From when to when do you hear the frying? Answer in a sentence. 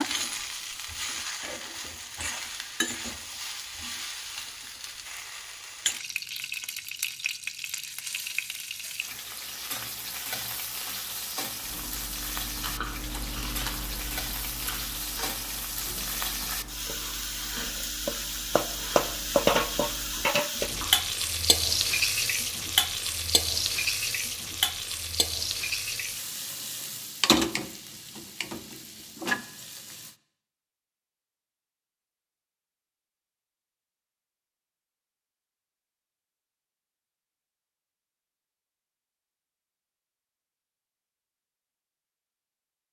You can hear the frying from 0.0 to 30.1 s.